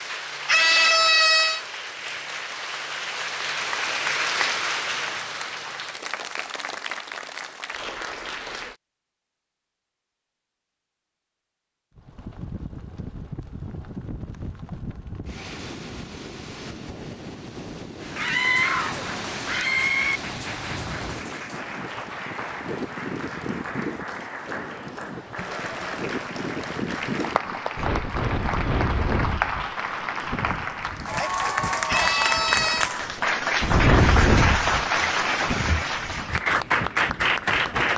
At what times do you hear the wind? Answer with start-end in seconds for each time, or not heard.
11.9-37.9.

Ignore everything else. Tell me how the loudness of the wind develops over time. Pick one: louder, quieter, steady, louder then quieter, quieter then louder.
louder.